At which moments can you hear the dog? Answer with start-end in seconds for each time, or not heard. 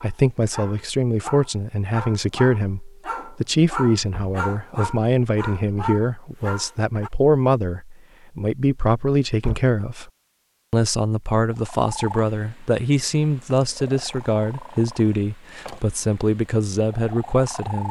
0.0-7.1.